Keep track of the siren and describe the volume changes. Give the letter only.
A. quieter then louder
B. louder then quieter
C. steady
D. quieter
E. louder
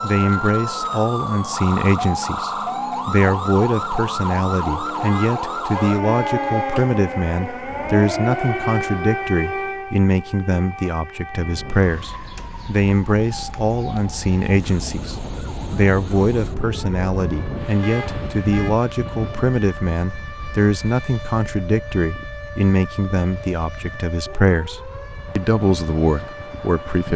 D.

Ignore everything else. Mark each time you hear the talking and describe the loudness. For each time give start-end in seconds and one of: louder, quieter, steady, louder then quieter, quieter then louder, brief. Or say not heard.
0.0-27.1 steady.